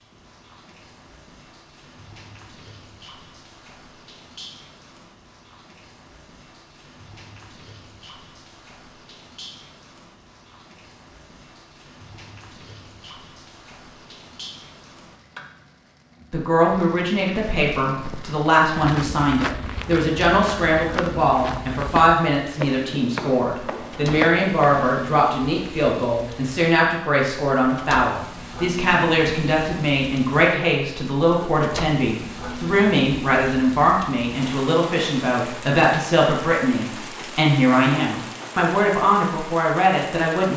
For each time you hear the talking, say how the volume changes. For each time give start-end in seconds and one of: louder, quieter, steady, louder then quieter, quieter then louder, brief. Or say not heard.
16.3-40.5 steady.